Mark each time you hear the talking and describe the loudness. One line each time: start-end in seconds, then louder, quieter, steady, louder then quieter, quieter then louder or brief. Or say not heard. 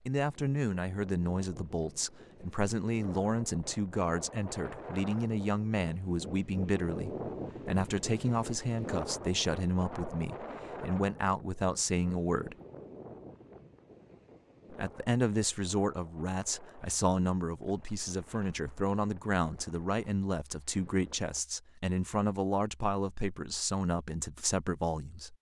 0.1-12.6 steady
14.7-25.3 steady.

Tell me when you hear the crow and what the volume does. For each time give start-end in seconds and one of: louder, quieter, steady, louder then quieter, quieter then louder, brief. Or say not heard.
not heard.